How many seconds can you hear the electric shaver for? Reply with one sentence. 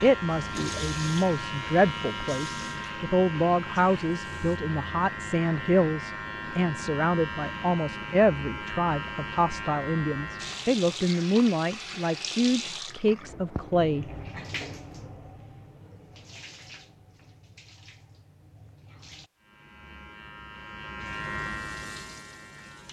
You can hear the electric shaver for 14 seconds altogether.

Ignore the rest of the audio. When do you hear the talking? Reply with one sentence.
The talking can be heard from 0.0 to 14.1 s.